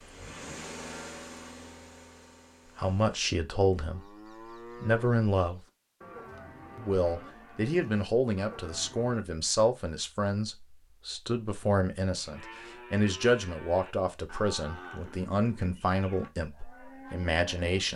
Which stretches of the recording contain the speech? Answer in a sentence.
The speech can be heard from 2.8 to 4.0 s, from 4.8 to 5.6 s and from 6.8 to 17.9 s.